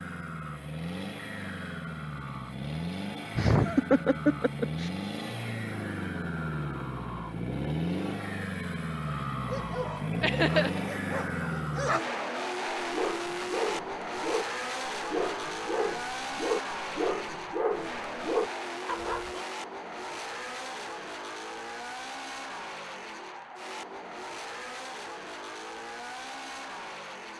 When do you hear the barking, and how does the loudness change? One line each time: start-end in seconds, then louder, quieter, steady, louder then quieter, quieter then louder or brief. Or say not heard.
9.4-19.4 louder.